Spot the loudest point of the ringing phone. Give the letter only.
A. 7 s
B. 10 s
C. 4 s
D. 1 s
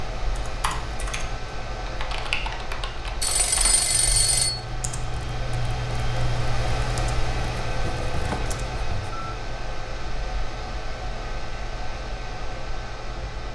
C.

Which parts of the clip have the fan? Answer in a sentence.
You can hear the fan from 0.0 to 13.4 s.